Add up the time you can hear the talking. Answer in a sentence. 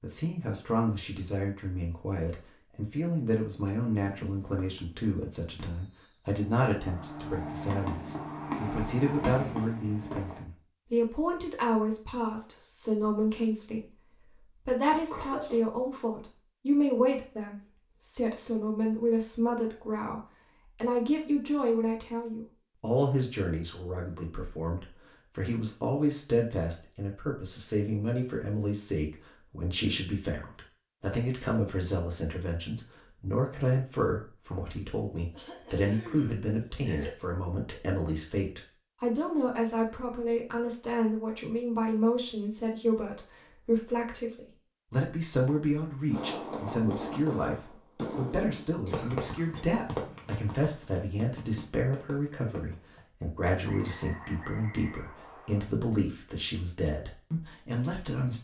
The talking can be heard for 58 seconds in total.